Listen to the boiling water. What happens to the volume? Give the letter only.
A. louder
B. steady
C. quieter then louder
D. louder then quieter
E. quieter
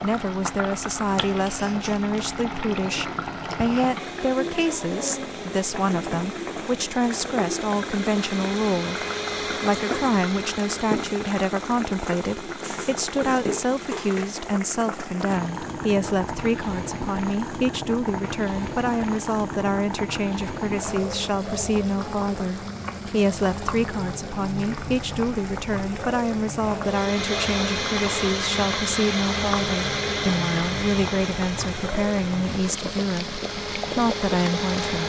B.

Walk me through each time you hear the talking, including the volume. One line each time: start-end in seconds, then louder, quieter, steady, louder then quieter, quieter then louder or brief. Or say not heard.
0.0-35.0 steady.